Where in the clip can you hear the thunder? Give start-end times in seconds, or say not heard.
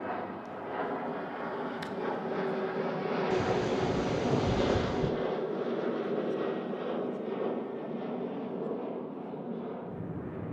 3.3-5.1.